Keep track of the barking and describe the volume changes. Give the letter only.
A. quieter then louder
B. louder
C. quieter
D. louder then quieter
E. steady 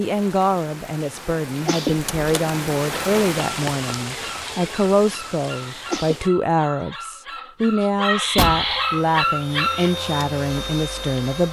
B.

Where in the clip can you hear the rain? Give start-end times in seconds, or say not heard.
0.0-6.3.